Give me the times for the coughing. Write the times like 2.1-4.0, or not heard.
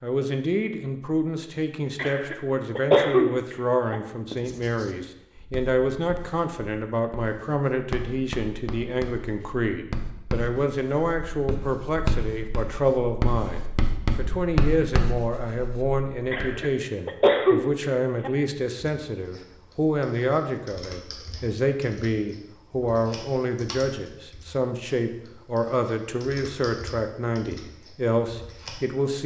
1.9-4.0, 16.3-18.3.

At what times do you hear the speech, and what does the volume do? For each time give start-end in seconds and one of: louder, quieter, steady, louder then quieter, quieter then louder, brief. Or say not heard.
0.0-29.2 steady.